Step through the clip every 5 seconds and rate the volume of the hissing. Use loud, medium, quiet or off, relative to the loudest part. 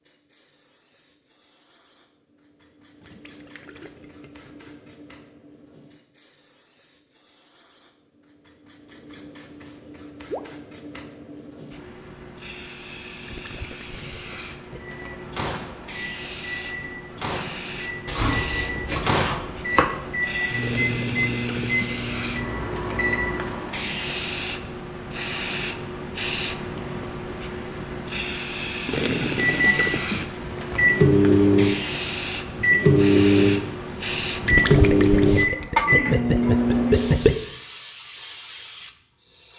quiet, quiet, medium, medium, loud, loud, loud, loud.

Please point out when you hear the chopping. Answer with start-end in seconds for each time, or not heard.
18.1-19.9.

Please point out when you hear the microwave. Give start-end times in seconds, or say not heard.
15.1-23.8, 29.4-37.3.